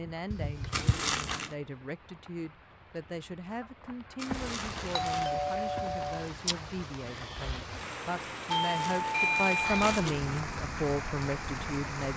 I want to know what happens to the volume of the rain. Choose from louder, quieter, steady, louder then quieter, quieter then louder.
louder.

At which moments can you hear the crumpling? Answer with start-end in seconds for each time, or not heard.
0.7-1.6, 4.2-5.3, 8.6-10.4.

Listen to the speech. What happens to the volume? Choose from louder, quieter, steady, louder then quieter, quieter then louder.
louder.